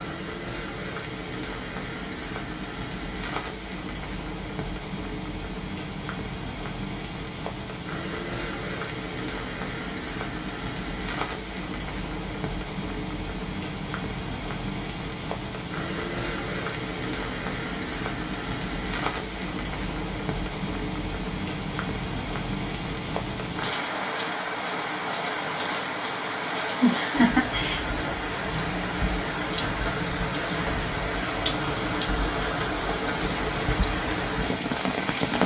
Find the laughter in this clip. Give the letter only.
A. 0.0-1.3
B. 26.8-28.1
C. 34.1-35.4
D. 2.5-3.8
B.